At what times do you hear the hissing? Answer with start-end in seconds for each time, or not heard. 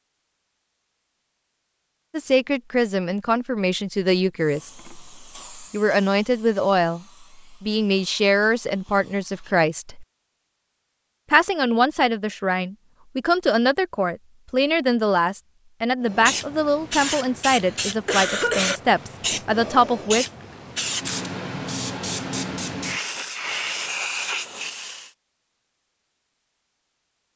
4.3-9.6, 16.1-25.1.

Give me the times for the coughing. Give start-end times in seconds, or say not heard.
16.9-18.8.